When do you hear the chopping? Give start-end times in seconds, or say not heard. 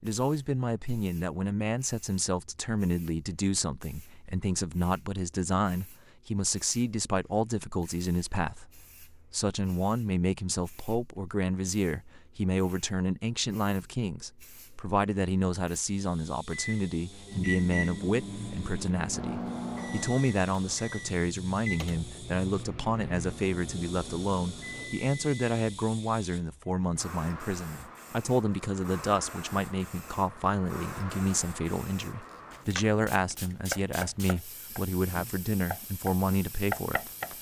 33.3-37.3.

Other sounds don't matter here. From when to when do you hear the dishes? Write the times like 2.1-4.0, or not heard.
not heard.